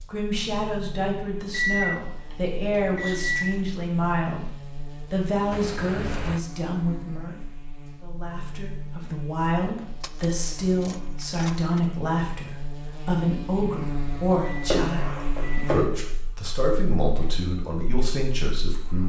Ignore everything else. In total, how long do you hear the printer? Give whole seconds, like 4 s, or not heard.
not heard.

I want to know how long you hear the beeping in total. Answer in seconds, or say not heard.
3 s.